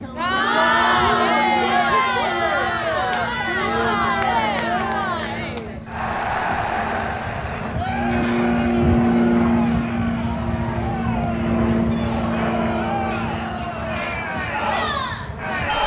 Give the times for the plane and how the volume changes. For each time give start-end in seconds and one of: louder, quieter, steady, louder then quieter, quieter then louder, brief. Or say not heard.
0.0-15.8 louder then quieter.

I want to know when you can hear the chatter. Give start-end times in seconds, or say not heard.
0.0-15.8.